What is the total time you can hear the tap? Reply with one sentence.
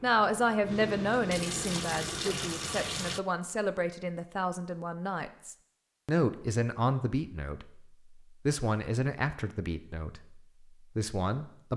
You can hear the tap for 3 seconds altogether.